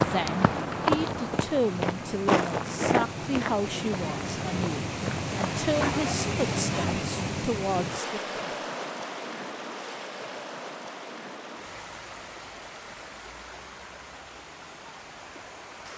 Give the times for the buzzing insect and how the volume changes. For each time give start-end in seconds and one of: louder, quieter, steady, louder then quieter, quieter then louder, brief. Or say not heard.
not heard.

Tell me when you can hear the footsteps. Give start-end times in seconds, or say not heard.
0.0-6.0.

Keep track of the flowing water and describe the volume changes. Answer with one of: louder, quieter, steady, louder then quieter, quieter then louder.
louder then quieter.